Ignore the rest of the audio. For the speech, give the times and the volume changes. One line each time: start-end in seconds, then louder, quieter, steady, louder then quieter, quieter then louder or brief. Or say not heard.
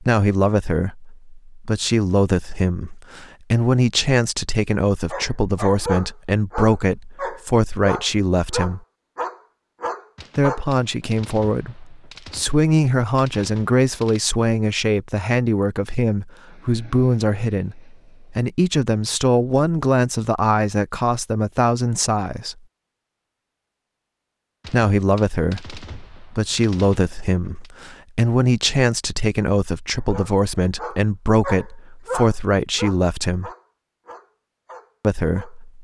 0.0-8.8 steady
10.3-22.6 steady
24.6-33.5 steady
35.0-35.7 brief.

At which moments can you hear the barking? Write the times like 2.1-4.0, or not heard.
5.1-10.7, 29.9-35.6.